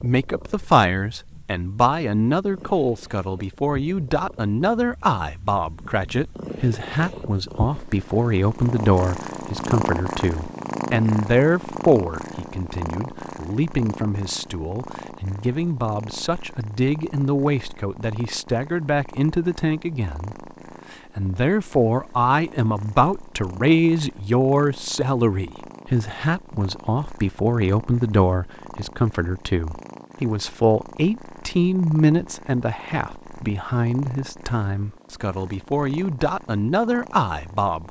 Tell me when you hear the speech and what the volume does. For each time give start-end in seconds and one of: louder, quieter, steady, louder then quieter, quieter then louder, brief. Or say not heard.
0.0-37.8 steady.